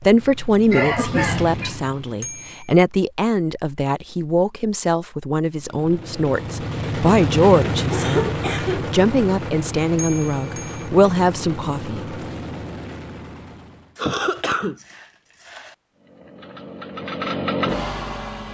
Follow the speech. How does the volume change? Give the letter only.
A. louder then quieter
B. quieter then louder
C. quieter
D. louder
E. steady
E.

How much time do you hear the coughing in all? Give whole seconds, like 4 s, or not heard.
4 s.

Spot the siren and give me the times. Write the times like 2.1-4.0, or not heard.
not heard.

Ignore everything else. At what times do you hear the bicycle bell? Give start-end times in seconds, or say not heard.
2.2-2.6, 9.9-10.9.